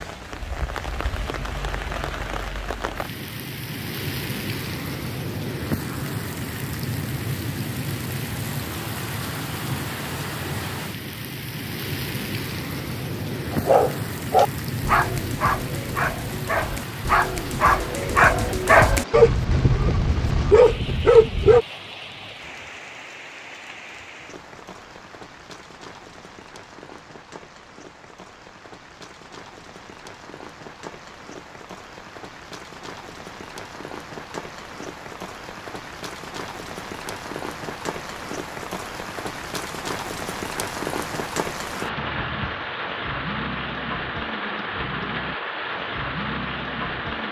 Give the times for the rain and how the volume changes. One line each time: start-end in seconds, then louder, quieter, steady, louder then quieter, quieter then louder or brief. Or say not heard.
0.0-47.2 quieter then louder.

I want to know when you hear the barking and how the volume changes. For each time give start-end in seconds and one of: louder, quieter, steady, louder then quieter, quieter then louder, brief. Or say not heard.
13.5-21.6 quieter then louder.